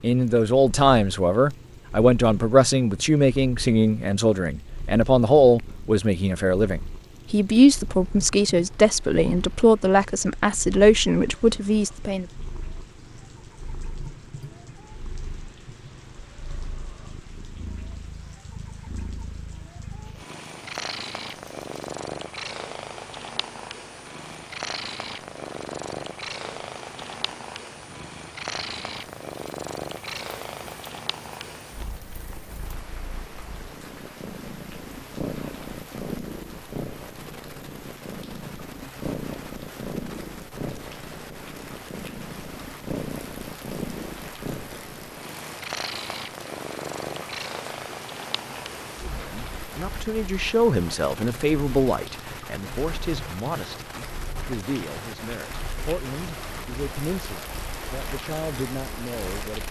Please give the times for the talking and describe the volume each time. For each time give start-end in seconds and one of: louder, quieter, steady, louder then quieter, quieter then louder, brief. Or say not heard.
0.0-12.2 steady
49.0-59.6 quieter.